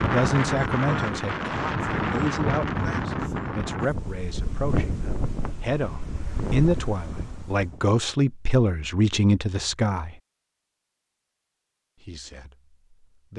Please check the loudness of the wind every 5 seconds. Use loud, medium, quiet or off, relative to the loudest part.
loud, medium, off.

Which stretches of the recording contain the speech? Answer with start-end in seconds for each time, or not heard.
0.0-10.2, 12.1-12.5.